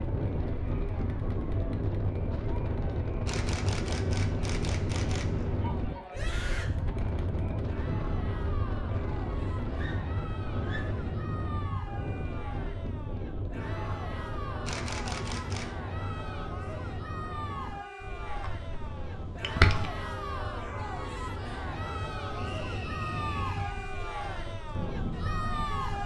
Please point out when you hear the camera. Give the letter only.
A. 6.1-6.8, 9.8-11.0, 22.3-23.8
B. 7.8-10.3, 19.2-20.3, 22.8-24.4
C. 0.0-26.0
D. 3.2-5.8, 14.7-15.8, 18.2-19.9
D.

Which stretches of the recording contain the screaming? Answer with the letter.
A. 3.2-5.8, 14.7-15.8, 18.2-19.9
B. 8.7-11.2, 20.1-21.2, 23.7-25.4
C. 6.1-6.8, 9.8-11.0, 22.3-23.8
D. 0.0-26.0
C.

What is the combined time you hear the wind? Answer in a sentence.
You can hear the wind for 26 seconds altogether.